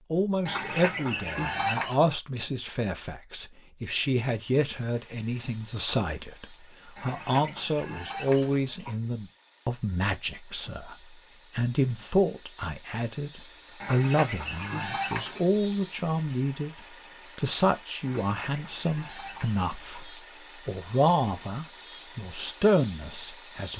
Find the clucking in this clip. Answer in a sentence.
The clucking can be heard from 0.5 to 2.0 s, from 7.0 to 8.9 s, from 13.8 to 15.4 s and from 18.0 to 20.1 s.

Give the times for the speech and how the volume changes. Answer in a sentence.
The speech can be heard from 0.1 to 23.7 s, at a steady volume.